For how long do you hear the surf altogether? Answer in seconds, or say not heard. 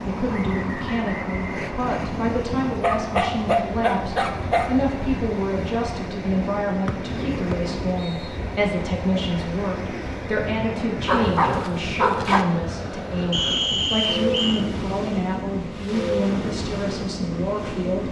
18 s.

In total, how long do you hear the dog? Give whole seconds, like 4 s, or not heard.
3 s.